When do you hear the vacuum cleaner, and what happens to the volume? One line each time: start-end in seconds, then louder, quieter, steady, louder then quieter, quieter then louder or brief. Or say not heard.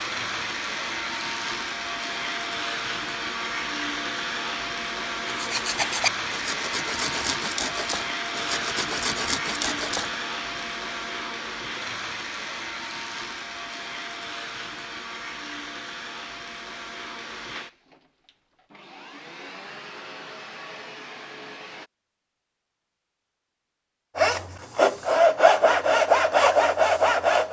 0.0-21.9 quieter.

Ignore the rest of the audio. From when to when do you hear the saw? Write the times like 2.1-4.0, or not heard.
5.2-10.7, 24.1-27.4.